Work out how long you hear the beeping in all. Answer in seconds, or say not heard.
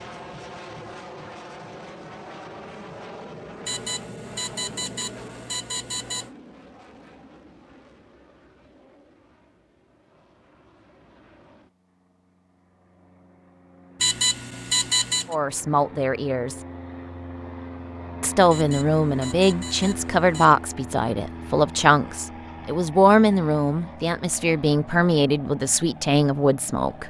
6 s.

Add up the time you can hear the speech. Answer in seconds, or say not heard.
10 s.